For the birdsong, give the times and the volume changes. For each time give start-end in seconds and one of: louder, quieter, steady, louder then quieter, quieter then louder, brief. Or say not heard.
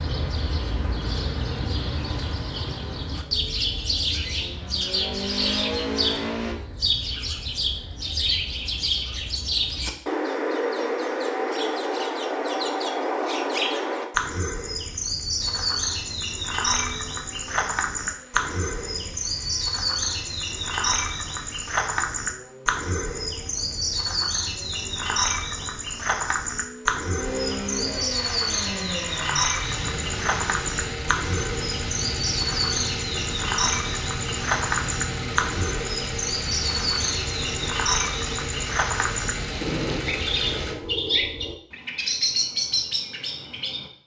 0.0-43.9 steady.